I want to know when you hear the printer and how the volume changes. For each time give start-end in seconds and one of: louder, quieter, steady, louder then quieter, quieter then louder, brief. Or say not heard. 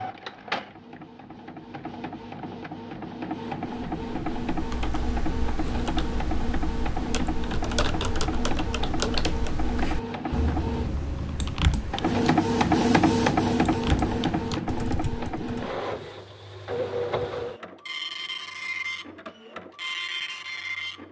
0.0-21.0 louder then quieter.